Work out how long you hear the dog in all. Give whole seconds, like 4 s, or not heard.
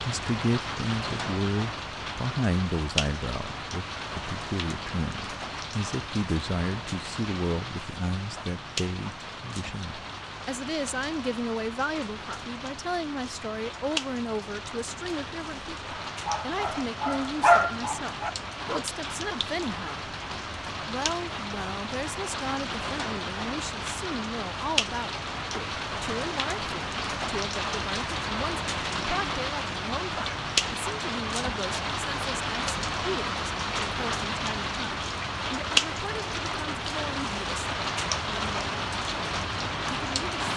3 s.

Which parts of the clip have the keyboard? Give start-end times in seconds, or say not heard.
not heard.